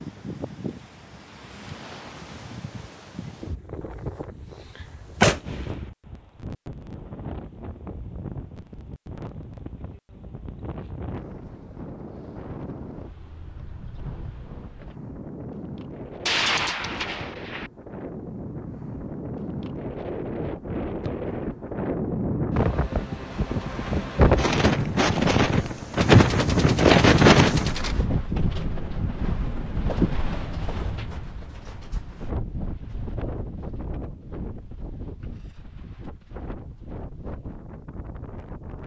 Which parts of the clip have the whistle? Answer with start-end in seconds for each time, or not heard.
not heard.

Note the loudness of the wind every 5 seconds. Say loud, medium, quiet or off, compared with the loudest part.
quiet, quiet, quiet, quiet, medium, loud, quiet, quiet.